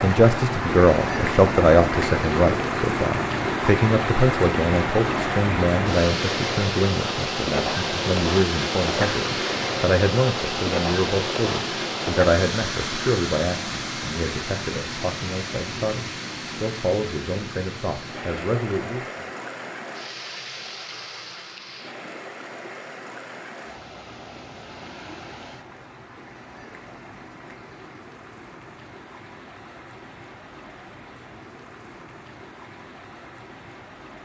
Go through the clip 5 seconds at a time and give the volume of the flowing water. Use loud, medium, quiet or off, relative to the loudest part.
loud, loud, loud, medium, quiet, quiet, quiet.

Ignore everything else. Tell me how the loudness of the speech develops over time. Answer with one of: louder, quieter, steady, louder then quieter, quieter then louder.
quieter.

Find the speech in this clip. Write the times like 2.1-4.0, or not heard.
0.0-19.2.